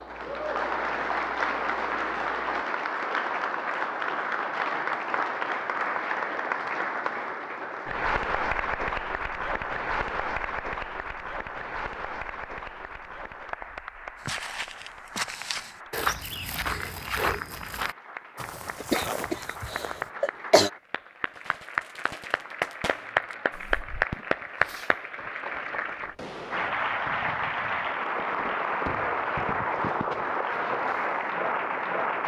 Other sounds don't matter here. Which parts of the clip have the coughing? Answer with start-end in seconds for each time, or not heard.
18.8-20.7.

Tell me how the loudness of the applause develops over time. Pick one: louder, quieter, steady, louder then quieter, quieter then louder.
quieter then louder.